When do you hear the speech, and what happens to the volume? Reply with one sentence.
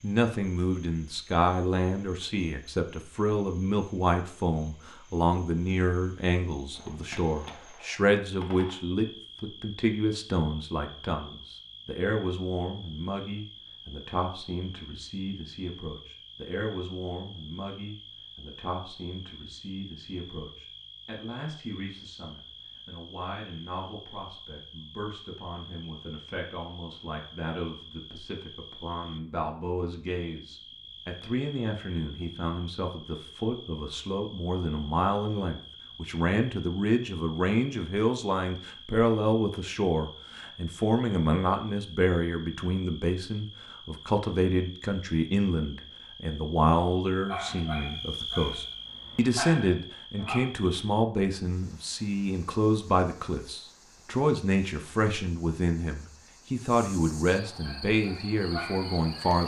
You can hear the speech from 0.0 to 59.4 s, getting quieter then louder.